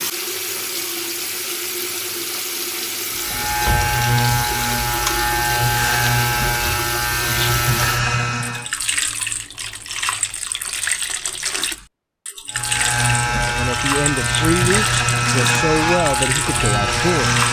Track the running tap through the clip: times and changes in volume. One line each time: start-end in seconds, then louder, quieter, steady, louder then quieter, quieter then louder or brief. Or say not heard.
0.0-17.4 steady.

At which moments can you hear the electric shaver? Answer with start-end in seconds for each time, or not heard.
3.1-8.7, 12.5-17.4.